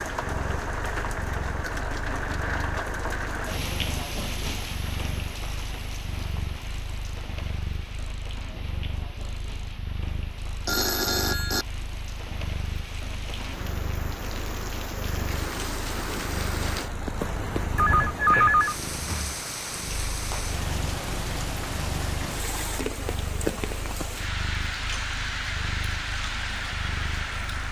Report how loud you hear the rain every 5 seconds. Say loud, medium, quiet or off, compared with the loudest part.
loud, medium, medium, loud, loud, loud.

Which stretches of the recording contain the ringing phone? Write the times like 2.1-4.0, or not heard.
10.7-11.7, 17.8-19.4.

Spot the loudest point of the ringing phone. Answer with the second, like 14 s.
18 s.